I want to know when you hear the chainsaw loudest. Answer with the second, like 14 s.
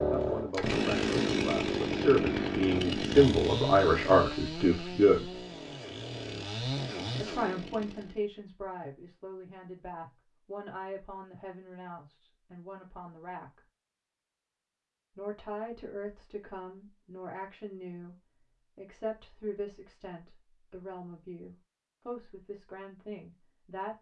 1 s.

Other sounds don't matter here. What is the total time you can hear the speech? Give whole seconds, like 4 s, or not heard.
20 s.